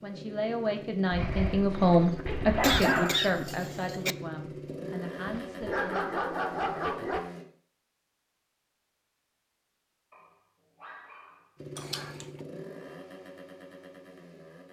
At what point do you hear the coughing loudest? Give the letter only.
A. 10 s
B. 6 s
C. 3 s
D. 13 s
C.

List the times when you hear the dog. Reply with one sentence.
You can hear the dog from 1.1 to 3.1 s, from 5.2 to 7.2 s and from 10.1 to 12.2 s.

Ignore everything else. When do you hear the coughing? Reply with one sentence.
The coughing can be heard from 2.6 to 4.2 s and from 11.8 to 12.2 s.